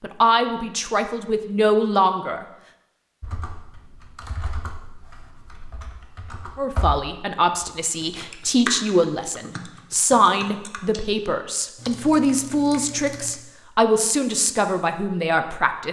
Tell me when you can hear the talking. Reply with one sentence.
You can hear the talking from 0.0 to 2.5 s and from 6.5 to 15.8 s.